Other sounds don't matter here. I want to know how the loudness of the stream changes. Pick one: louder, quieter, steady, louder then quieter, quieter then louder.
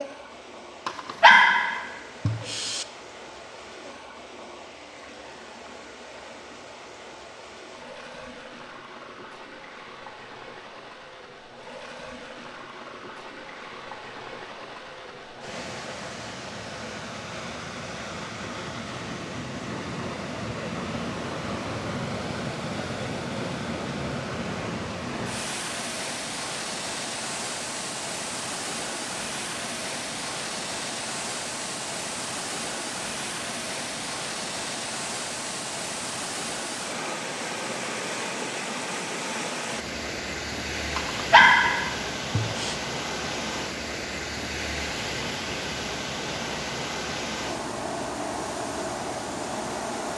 louder.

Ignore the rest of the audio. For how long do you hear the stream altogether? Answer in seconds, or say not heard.
50 s.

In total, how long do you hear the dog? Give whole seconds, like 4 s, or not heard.
4 s.